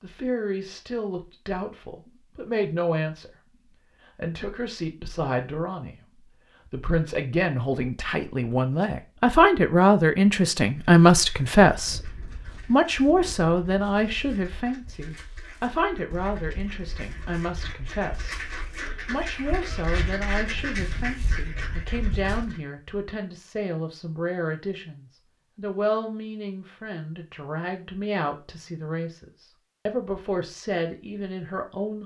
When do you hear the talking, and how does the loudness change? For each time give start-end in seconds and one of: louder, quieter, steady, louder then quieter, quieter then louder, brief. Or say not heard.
0.0-32.0 louder then quieter.